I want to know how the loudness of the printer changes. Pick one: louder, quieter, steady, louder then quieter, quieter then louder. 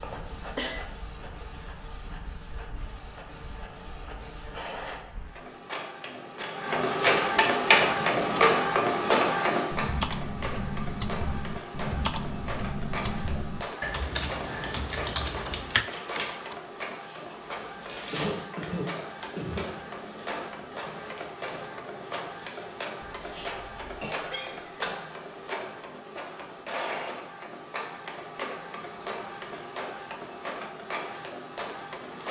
louder then quieter.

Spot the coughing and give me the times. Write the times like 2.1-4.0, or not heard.
0.0-0.7, 18.1-19.7, 23.0-24.9.